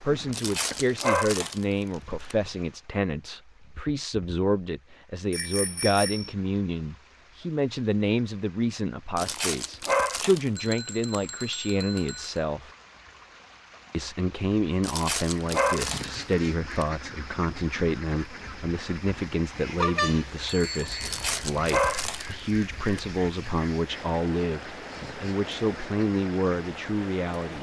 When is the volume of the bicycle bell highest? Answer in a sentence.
The volume of the bicycle bell peaks at 20 seconds.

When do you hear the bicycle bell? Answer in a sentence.
You can hear the bicycle bell from 5.3 to 6.3 s, from 10.6 to 12.4 s and from 19.8 to 21.1 s.